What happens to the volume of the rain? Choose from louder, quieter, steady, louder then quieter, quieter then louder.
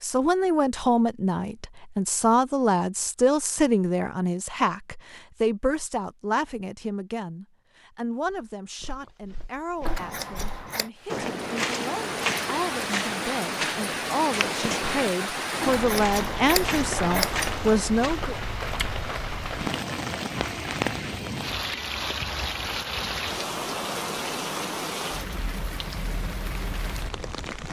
steady.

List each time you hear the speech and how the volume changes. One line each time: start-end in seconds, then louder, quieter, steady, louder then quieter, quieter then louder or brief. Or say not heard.
0.0-18.4 quieter then louder.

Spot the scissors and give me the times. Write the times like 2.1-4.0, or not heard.
9.8-10.9, 15.6-17.5.